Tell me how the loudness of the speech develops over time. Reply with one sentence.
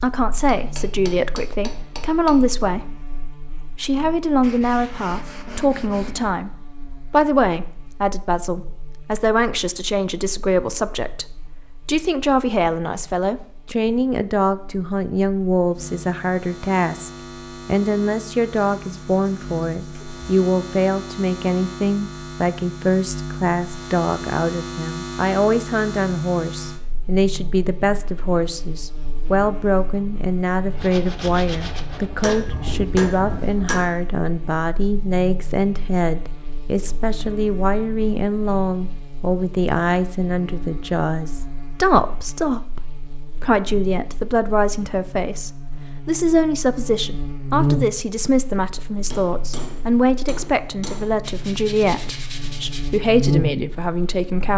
The loudness of the speech stays about the same.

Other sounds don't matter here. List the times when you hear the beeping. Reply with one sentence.
The beeping can't be heard in this clip.